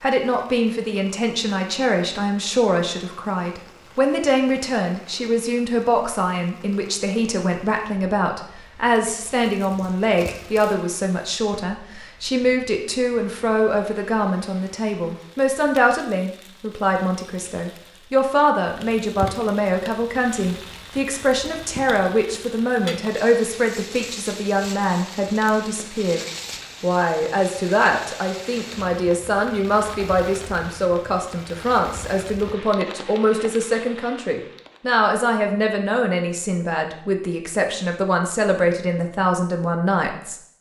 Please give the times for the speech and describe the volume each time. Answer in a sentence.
The speech can be heard from 0.0 to 26.2 s, at a steady volume; and from 26.8 to 40.4 s, at a steady volume.